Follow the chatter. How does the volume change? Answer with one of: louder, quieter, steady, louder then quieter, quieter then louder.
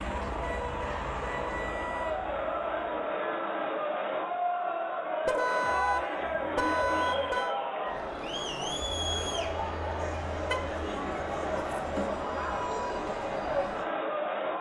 steady.